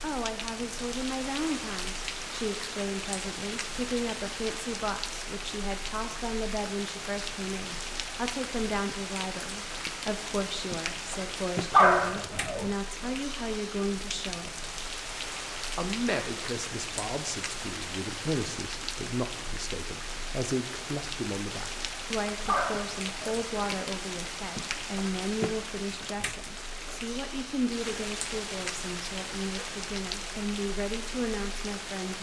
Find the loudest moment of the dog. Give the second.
12 s.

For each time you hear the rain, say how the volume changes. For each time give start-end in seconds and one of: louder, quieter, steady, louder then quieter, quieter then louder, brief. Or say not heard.
0.0-32.1 steady.